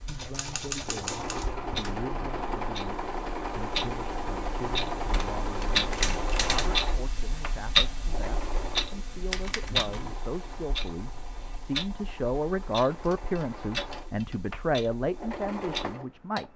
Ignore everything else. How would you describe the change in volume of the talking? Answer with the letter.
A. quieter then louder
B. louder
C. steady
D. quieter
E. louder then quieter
B.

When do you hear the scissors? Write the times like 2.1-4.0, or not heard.
not heard.